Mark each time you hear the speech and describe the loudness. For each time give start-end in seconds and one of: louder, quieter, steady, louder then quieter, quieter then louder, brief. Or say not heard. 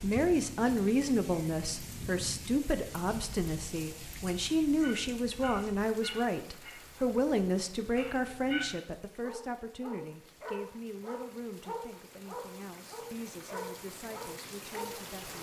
0.0-15.3 quieter.